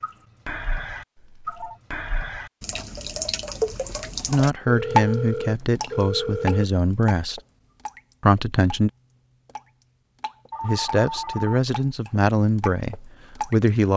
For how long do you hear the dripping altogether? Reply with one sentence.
You can hear the dripping for 14 seconds altogether.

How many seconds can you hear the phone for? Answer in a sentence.
The phone can be heard for 4 seconds in total.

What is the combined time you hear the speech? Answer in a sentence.
The speech can be heard for 7 seconds in total.